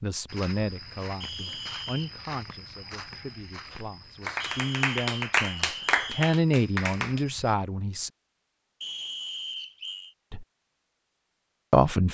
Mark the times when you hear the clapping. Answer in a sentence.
The clapping can be heard from 3.7 to 7.2 s.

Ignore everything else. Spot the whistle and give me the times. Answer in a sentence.
The whistle can be heard from 1.2 to 2.1 s, from 4.4 to 6.3 s and from 8.8 to 10.2 s.